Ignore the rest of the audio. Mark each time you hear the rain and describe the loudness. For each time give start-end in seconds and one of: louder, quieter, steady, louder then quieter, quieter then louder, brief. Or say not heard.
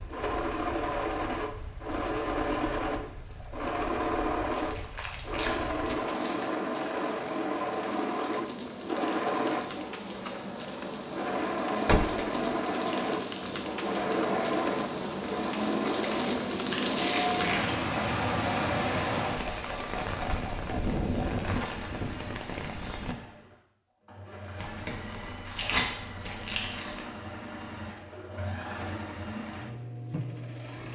0.0-23.1 louder.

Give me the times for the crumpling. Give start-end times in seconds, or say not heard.
4.5-6.5, 15.8-17.8, 24.6-27.1.